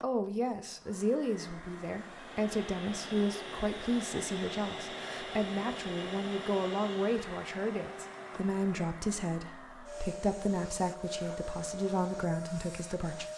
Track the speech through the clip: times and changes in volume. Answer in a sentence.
You can hear the speech from 0.0 to 13.2 s, at a steady volume.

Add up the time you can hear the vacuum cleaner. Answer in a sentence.
The vacuum cleaner can be heard for 13 seconds in total.